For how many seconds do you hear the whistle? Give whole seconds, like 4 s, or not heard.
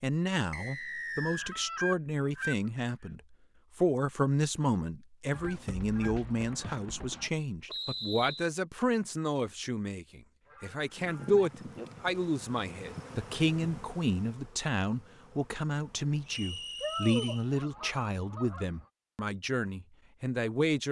3 s.